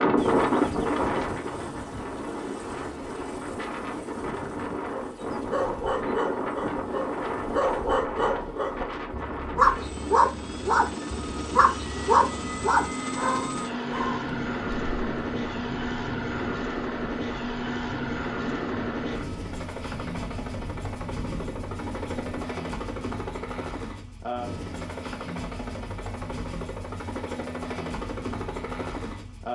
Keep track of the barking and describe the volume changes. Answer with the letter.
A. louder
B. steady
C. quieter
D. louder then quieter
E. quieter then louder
A.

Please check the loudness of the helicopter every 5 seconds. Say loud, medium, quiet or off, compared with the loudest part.
medium, quiet, loud, loud, loud, loud.